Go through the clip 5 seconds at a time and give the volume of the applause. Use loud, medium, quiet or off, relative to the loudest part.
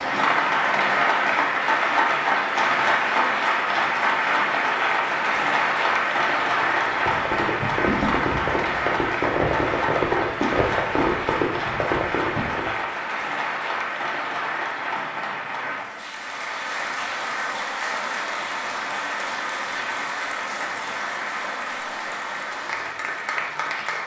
loud, loud, medium, medium, medium.